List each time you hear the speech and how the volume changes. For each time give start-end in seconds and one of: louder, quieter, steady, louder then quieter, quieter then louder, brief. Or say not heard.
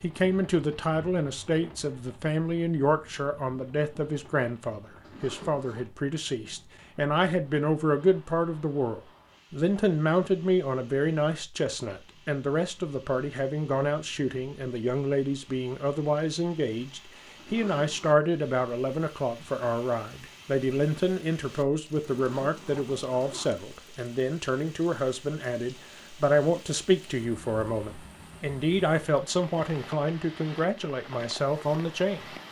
0.0-32.2 steady.